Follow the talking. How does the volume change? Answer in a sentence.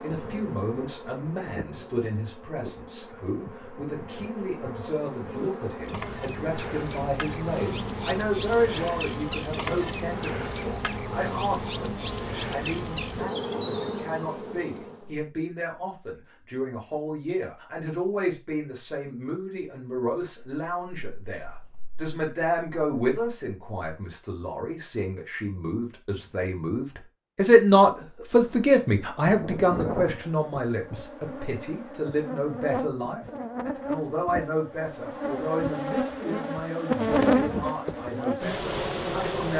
The volume of the talking goes up, then down.